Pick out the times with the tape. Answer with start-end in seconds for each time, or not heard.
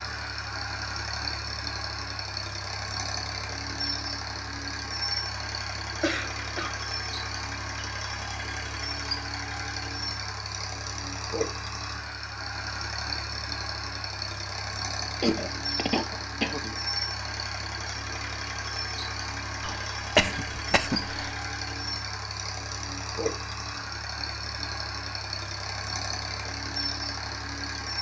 not heard.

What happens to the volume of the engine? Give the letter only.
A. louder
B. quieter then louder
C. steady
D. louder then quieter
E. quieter
C.